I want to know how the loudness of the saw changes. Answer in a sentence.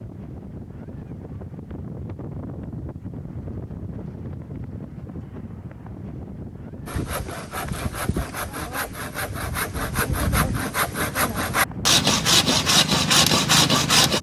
The loudness of the saw goes up.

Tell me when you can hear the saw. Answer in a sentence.
The saw can be heard from 6.8 to 14.1 s.